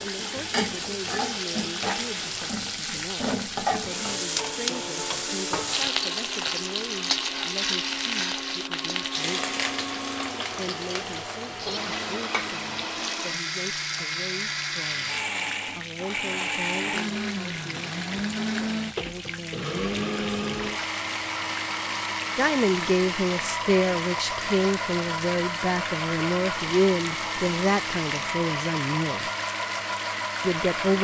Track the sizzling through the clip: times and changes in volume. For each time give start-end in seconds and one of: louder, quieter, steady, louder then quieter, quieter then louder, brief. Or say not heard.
0.0-30.9 quieter.